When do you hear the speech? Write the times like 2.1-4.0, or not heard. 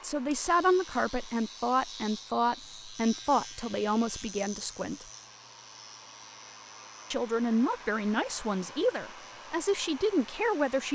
0.0-5.0, 7.1-10.9.